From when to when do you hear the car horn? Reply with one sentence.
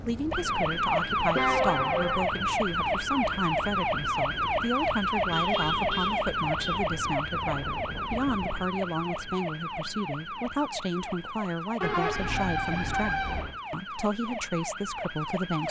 You can hear the car horn from 1.3 to 2.2 s, from 5.3 to 6.8 s and from 11.8 to 13.6 s.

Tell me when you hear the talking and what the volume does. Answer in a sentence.
You can hear the talking from 0.0 to 15.6 s, at a steady volume.